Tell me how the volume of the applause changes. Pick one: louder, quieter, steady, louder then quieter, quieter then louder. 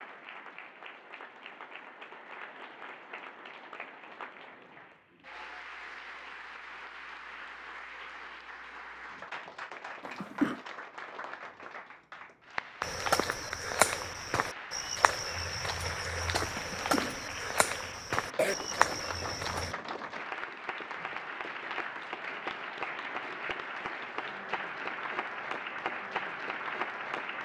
louder.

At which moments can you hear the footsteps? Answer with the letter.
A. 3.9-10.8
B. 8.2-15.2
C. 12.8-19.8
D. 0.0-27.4
C.